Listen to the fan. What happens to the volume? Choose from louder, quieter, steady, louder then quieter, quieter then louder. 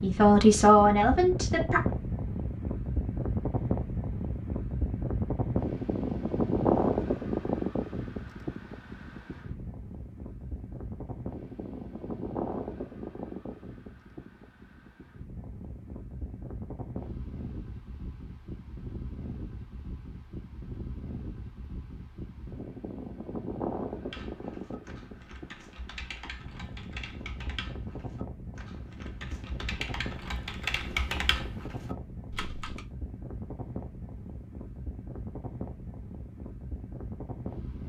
quieter.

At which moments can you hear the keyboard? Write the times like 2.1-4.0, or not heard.
24.1-32.9.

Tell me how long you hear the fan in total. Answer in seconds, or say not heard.
38 s.